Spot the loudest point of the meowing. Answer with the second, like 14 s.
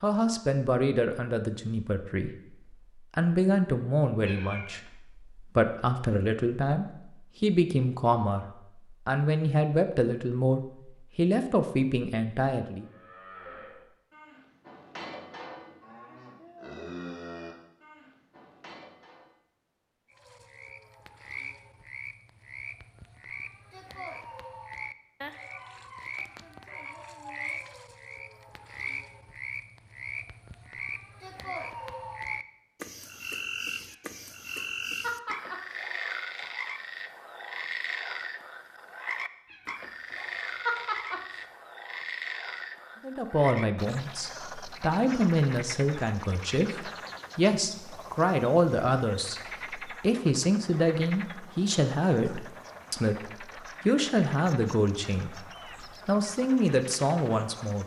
41 s.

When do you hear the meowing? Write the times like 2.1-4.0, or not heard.
4.2-4.9, 33.9-35.8, 39.5-41.5.